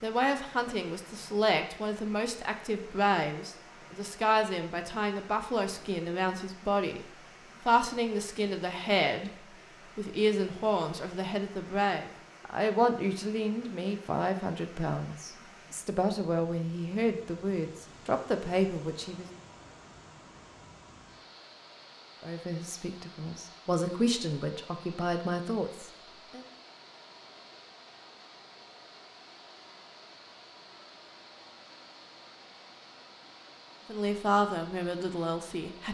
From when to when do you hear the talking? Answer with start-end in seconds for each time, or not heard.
0.0-19.2, 22.2-26.4, 33.9-35.8.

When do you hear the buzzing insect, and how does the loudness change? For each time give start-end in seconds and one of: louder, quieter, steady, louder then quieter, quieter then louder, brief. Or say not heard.
not heard.